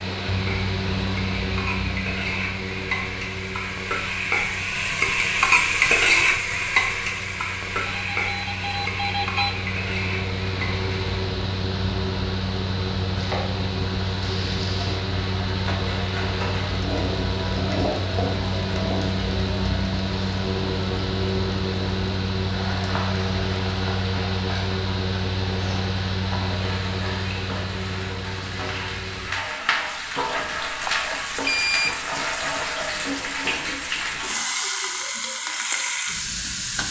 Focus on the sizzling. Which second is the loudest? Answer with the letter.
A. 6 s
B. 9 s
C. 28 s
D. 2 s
A.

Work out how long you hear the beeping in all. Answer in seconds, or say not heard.
3 s.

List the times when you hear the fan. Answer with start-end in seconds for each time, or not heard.
0.0-29.3.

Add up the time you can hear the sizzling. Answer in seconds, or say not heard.
35 s.